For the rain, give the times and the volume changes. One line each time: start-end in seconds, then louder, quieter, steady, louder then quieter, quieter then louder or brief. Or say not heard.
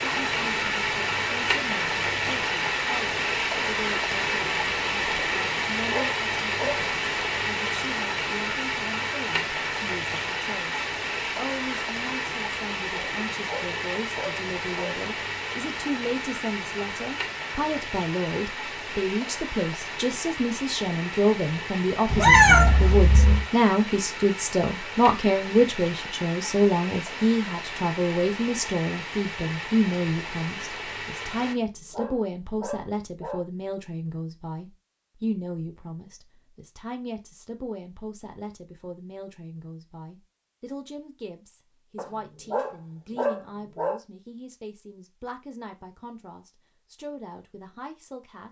0.0-31.6 quieter.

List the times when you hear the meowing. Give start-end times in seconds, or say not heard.
22.1-23.4.